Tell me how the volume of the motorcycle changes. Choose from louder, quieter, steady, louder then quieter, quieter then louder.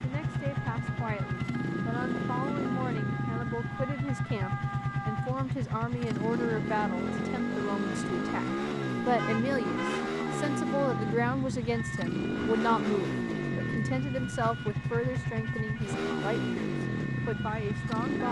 steady.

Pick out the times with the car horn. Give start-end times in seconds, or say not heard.
9.2-10.1.